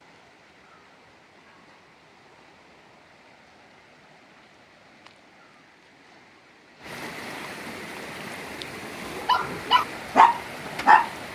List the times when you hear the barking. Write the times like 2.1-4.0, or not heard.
9.2-11.1.